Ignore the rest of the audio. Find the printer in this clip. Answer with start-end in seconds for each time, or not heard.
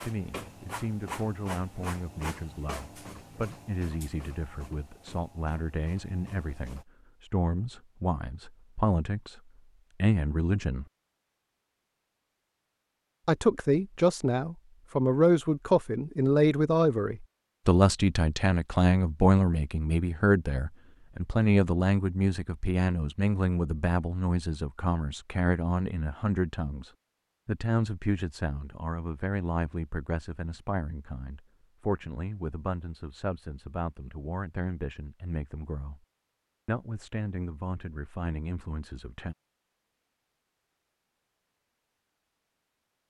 0.0-6.8.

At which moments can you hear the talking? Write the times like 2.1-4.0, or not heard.
0.0-9.4, 10.0-10.8, 13.2-36.0, 36.6-39.4.